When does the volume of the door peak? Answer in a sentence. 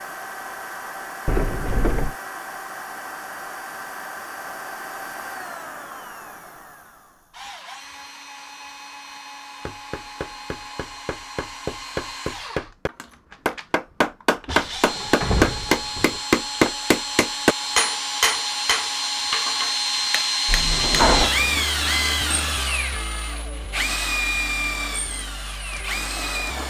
The volume of the door peaks at 21 seconds.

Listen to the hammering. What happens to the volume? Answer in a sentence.
The loudness of the hammering goes up, then down.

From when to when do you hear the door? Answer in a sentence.
You can hear the door from 1.2 to 2.1 s, from 14.4 to 16.2 s and from 20.4 to 21.3 s.